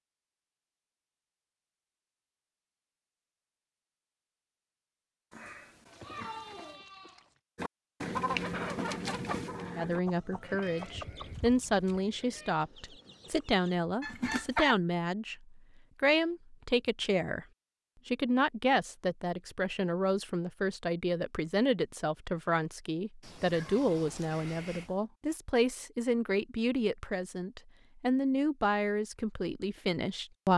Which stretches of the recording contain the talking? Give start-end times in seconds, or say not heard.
9.8-17.4, 18.1-30.5.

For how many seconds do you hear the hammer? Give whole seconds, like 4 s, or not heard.
not heard.